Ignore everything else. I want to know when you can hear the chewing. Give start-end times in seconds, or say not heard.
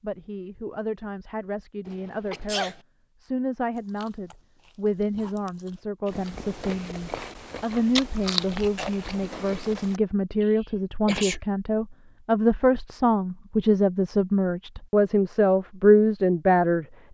3.7-10.0.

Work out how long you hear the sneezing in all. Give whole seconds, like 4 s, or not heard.
2 s.